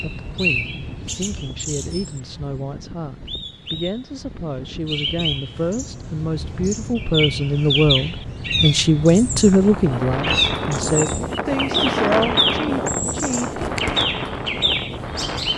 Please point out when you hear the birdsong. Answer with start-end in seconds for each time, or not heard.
0.0-15.5.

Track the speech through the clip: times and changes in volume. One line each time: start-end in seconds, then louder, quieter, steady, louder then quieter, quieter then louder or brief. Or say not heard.
0.0-13.6 louder then quieter.